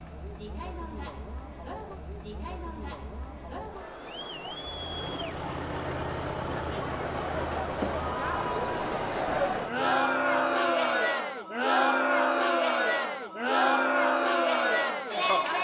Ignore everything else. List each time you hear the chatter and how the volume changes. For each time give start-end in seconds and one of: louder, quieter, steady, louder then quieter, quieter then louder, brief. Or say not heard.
0.0-15.5 louder.